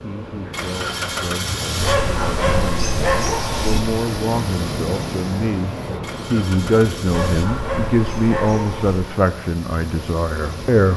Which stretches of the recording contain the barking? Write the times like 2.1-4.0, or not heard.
1.8-3.8, 7.0-9.1.